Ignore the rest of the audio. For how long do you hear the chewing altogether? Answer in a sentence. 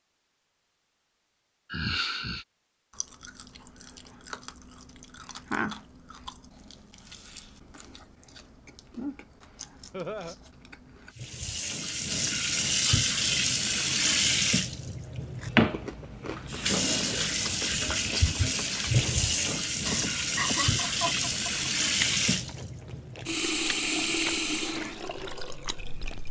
You can hear the chewing for 19 seconds altogether.